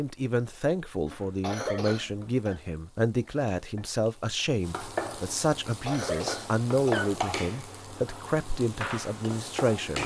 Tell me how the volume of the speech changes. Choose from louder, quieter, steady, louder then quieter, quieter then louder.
steady.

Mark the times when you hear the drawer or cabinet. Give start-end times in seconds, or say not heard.
not heard.